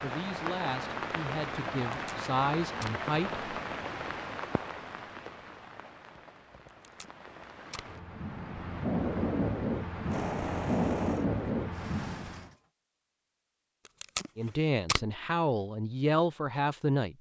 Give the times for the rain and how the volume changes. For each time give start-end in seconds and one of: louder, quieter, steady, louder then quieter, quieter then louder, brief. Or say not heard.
0.0-12.5 quieter then louder.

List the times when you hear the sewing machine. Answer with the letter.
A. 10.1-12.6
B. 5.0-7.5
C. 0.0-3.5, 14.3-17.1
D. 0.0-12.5
A.